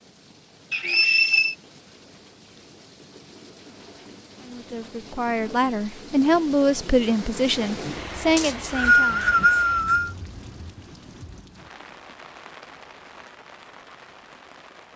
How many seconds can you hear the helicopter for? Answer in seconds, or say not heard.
not heard.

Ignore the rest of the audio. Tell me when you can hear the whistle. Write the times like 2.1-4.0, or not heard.
0.7-1.6, 8.3-10.1.